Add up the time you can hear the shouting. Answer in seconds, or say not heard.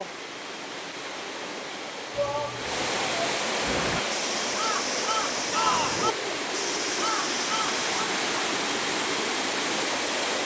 2 s.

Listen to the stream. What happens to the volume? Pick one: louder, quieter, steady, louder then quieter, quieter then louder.
louder.